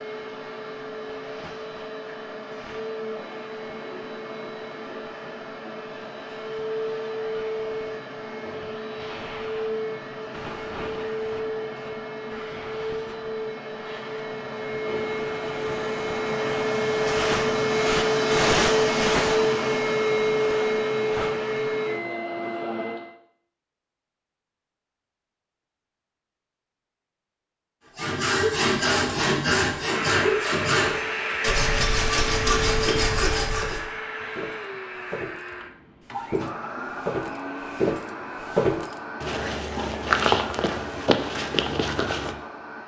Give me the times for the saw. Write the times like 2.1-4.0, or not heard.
27.9-33.9.